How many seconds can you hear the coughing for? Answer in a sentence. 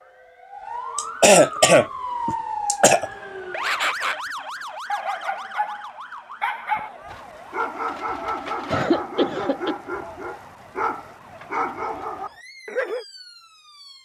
You can hear the coughing for 3 seconds altogether.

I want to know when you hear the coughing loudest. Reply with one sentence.
The loudest moment of the coughing is at 1 second.